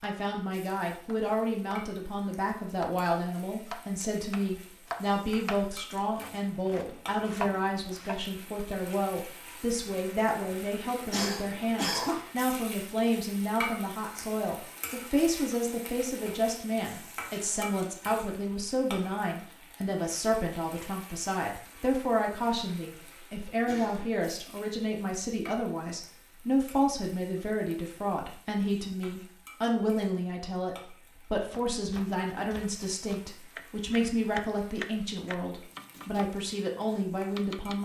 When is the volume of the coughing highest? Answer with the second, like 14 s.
12 s.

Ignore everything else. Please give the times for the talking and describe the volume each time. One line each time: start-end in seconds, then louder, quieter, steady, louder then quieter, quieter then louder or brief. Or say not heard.
0.0-37.8 steady.